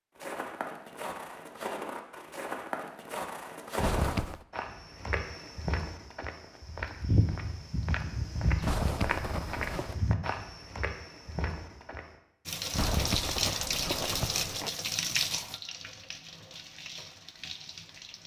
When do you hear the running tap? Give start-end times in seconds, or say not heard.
12.4-18.2.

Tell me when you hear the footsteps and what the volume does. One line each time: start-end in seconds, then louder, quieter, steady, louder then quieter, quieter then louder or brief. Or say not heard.
0.1-12.2 steady.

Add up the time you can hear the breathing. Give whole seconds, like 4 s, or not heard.
not heard.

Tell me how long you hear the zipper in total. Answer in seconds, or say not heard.
4 s.